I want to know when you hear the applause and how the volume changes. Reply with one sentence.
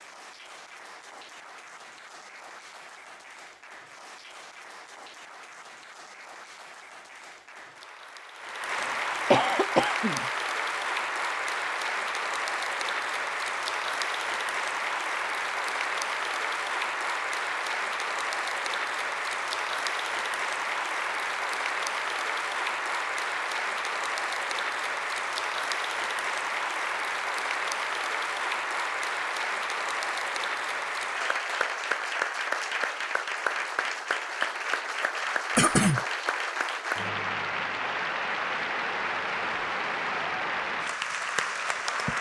You can hear the applause from 0.0 to 42.1 s, getting louder.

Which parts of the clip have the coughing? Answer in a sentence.
The coughing can be heard from 8.8 to 10.2 s and from 35.5 to 36.0 s.